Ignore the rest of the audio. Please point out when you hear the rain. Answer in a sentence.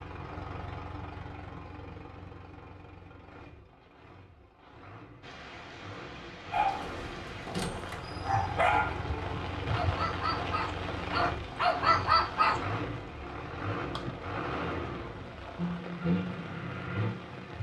You can hear the rain from 5.2 to 17.5 s.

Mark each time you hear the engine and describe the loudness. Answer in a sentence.
The engine can be heard from 0.0 to 17.5 s, getting louder.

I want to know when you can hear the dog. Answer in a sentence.
You can hear the dog from 6.5 to 12.6 s.